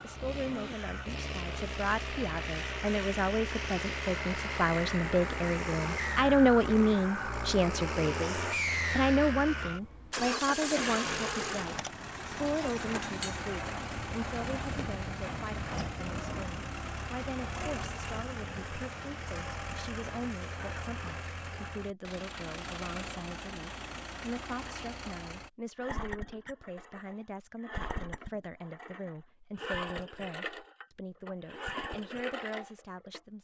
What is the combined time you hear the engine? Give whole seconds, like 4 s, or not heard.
33 s.